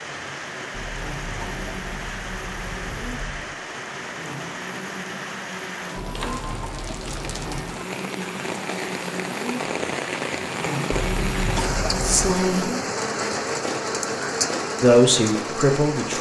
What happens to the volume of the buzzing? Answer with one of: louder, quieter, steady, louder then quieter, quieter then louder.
louder.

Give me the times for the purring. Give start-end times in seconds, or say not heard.
not heard.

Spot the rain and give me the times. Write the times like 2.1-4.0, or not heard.
0.0-16.1.